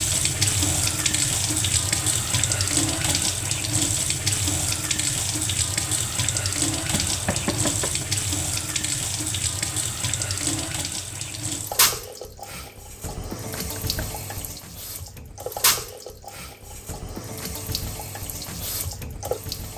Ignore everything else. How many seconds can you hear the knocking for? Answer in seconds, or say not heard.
2 s.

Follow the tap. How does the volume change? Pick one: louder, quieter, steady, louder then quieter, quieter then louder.
quieter.